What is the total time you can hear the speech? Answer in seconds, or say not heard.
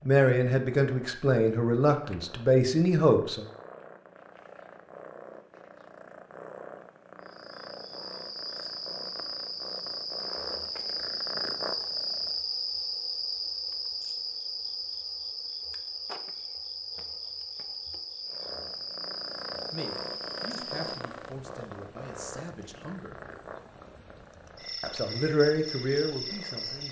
9 s.